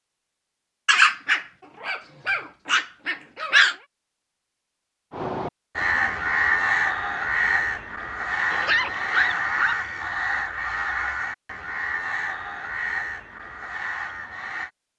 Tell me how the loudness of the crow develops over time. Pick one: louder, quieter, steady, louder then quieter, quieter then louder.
quieter.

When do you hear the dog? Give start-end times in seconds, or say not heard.
0.8-3.8, 8.5-9.8.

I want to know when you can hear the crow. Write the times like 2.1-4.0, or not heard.
5.1-14.7.